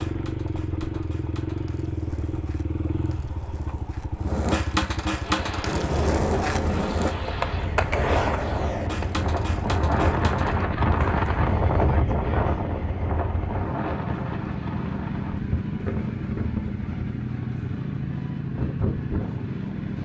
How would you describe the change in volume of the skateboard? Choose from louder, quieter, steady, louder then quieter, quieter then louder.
louder then quieter.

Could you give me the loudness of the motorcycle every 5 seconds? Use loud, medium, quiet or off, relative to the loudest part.
loud, medium, loud, loud.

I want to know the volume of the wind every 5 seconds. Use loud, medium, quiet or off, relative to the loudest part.
off, medium, loud, medium.